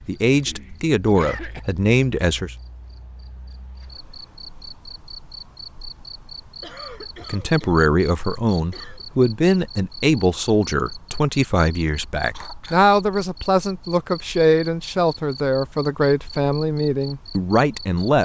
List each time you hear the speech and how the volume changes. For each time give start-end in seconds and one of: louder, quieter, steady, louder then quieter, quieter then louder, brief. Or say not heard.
0.1-2.5 brief
7.2-18.2 steady.